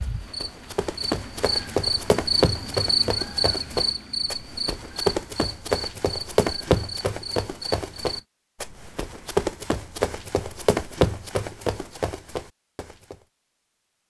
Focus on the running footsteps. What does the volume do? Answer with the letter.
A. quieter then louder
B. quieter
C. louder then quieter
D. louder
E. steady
E.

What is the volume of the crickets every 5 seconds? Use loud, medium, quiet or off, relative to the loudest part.
loud, medium, off.